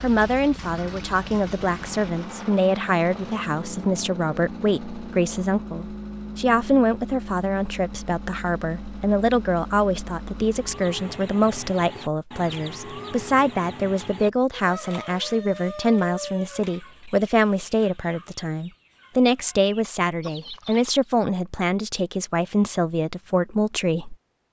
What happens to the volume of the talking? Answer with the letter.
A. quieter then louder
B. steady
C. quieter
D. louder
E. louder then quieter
B.